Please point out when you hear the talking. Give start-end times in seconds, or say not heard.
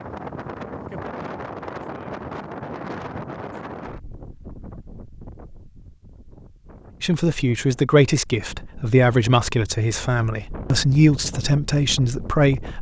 7.0-12.7.